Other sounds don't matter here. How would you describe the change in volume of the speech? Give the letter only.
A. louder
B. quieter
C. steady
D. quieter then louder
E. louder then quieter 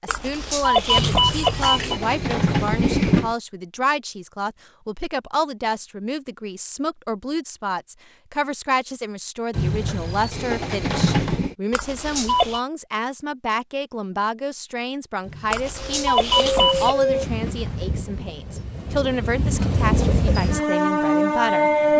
C.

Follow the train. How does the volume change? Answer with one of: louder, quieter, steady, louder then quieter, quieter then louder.
quieter then louder.